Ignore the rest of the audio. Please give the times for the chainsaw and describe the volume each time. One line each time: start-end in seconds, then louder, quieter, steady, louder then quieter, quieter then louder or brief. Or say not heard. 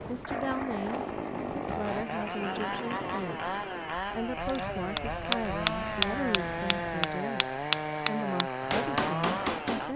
0.2-9.9 steady.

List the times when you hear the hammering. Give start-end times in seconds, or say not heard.
4.5-9.9.